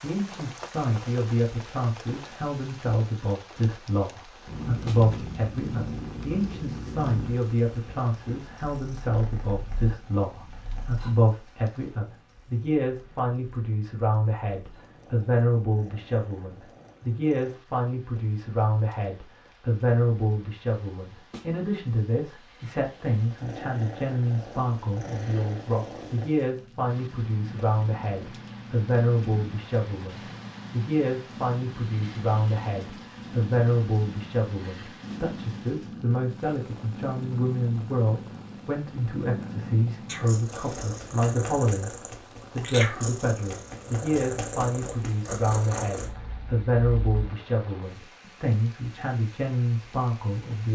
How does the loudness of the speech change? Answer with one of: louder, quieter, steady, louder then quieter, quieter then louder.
steady.